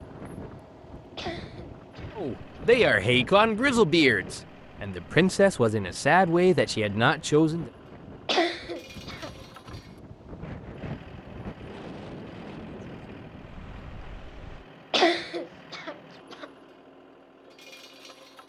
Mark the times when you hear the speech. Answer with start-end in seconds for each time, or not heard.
2.1-7.7.